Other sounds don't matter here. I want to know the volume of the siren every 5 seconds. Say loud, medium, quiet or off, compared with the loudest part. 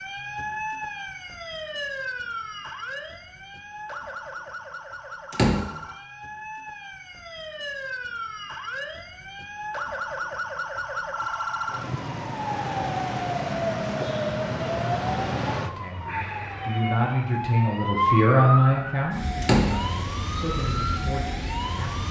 medium, medium, loud, loud, loud.